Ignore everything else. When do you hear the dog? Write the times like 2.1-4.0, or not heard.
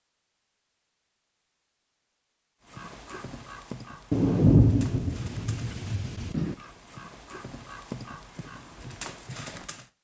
not heard.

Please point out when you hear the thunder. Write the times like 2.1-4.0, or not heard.
4.1-6.5.